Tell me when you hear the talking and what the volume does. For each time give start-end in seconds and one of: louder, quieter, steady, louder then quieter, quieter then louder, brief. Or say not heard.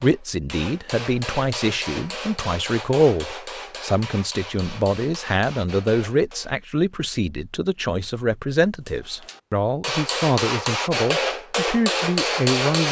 0.0-12.8 steady.